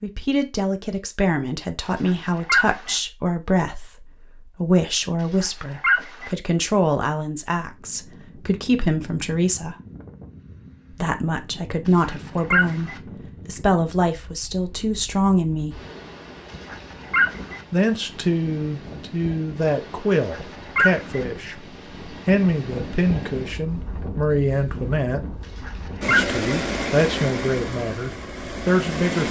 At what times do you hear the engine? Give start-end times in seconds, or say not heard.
26.0-29.2.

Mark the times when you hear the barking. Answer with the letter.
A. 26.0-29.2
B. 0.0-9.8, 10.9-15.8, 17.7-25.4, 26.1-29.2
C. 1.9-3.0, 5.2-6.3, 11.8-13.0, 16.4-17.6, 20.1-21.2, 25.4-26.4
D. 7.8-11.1
C.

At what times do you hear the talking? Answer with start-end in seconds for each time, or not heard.
0.0-9.8, 10.9-15.8, 17.7-25.4, 26.1-29.2.